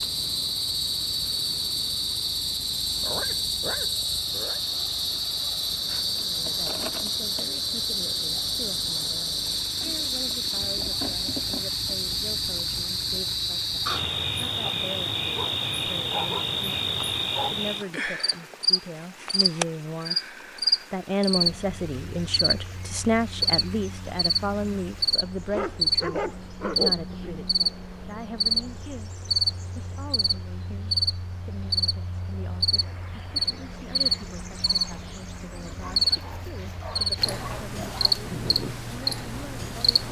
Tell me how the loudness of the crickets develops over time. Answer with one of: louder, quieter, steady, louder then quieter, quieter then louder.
steady.